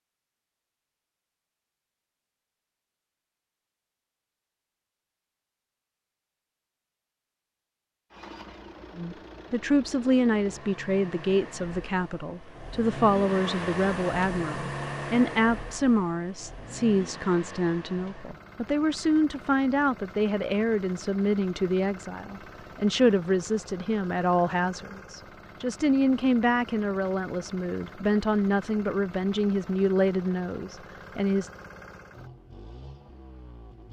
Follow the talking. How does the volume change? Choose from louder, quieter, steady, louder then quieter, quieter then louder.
steady.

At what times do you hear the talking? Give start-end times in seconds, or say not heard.
8.9-31.5.